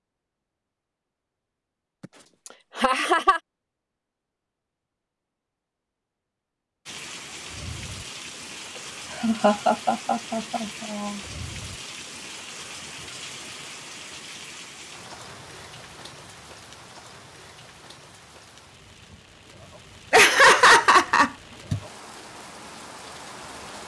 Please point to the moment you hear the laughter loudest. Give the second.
21 s.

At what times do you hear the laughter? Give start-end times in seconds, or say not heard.
2.8-3.4, 9.1-11.2, 20.1-21.8.